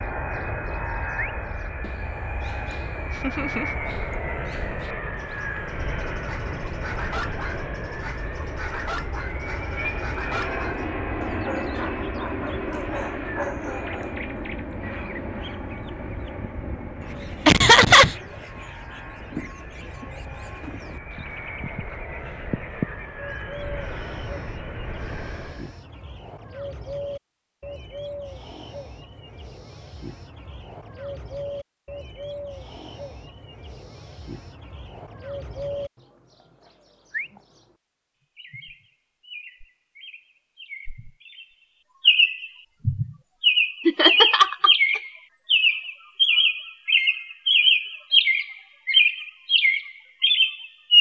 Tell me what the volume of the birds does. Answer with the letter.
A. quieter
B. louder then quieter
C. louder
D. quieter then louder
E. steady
C.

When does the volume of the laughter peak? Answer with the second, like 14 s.
18 s.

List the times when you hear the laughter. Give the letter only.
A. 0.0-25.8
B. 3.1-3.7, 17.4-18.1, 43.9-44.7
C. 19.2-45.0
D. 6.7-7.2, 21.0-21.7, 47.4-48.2
B.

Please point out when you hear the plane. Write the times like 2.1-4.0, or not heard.
0.0-25.8.